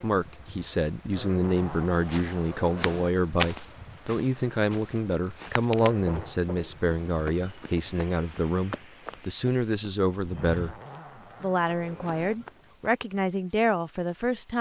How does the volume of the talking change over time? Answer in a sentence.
The loudness of the talking stays about the same.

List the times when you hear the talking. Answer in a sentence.
You can hear the talking from 0.0 to 10.8 s and from 11.4 to 14.5 s.